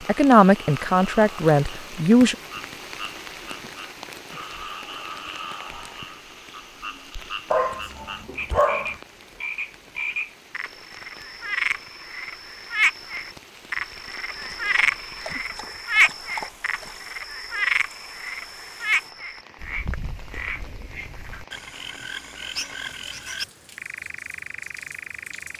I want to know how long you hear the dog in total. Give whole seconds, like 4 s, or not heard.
4 s.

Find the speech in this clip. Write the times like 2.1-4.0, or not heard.
0.1-2.4.